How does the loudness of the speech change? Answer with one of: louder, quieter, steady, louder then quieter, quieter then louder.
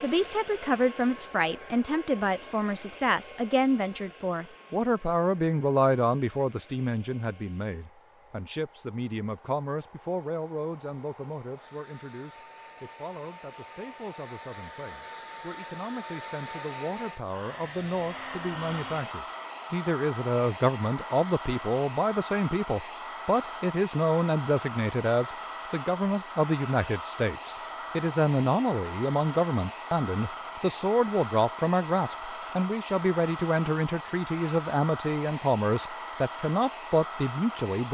quieter then louder.